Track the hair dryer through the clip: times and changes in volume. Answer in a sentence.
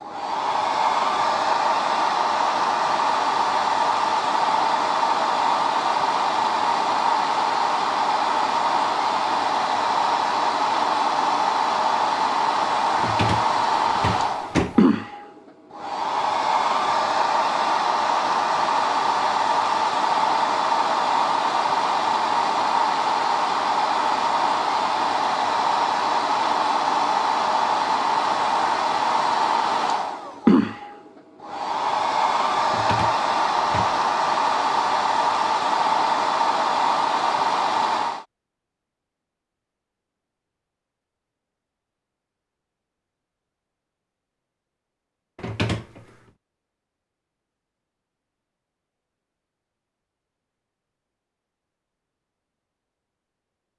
You can hear the hair dryer from 0.0 to 38.2 s, at a steady volume.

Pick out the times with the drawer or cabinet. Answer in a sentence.
You can hear the drawer or cabinet from 12.9 to 14.8 s, from 32.6 to 34.0 s and from 45.4 to 46.0 s.